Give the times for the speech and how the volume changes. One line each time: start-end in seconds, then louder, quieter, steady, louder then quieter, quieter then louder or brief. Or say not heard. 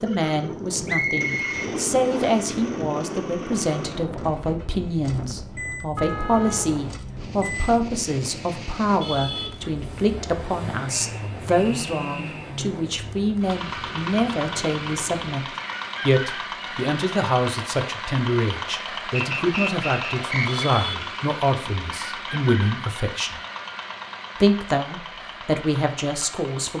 0.0-15.4 steady
16.1-23.4 steady
24.4-26.7 brief.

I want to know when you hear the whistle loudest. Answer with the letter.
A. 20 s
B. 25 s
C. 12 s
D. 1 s
D.